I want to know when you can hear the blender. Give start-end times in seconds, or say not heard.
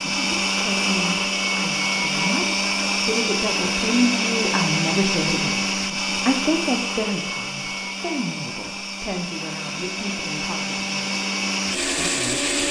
0.0-12.6.